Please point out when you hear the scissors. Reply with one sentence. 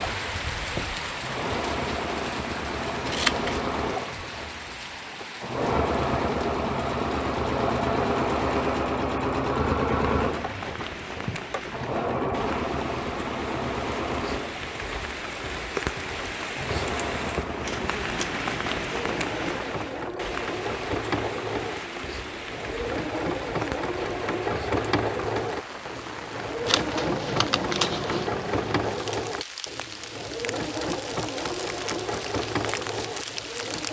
The scissors can be heard from 3.0 to 3.6 s, from 17.6 to 18.2 s and from 26.6 to 28.2 s.